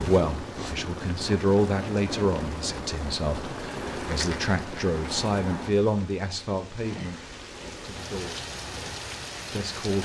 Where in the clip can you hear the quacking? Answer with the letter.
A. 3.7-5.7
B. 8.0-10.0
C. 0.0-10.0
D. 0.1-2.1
A.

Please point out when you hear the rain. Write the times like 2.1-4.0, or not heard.
0.0-10.0.